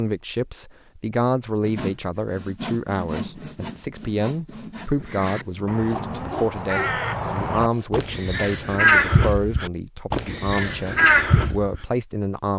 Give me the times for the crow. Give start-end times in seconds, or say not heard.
5.0-11.8.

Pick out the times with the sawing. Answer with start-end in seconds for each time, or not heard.
1.6-7.9.